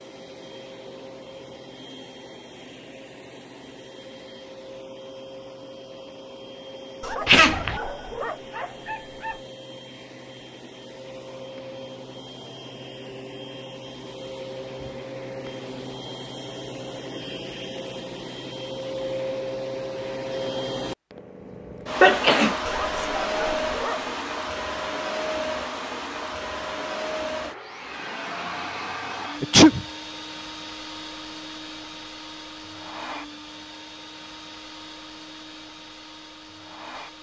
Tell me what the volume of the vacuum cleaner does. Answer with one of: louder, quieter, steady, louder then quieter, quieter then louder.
louder then quieter.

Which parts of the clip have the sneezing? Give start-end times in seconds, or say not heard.
7.2-7.8, 22.0-23.1, 29.4-29.9.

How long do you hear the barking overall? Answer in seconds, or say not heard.
4 s.